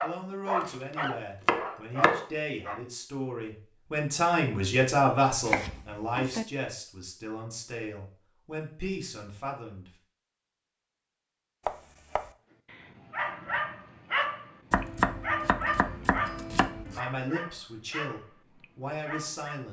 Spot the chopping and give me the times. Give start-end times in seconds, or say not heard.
1.0-2.2, 5.5-6.5, 11.7-12.3, 14.7-17.0.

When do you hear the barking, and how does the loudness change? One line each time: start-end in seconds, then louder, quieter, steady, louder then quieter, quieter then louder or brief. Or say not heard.
0.0-2.8 brief
12.7-19.6 quieter.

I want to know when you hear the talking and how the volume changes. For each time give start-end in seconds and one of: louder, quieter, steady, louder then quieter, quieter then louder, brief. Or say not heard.
0.0-9.9 louder then quieter
16.9-19.6 brief.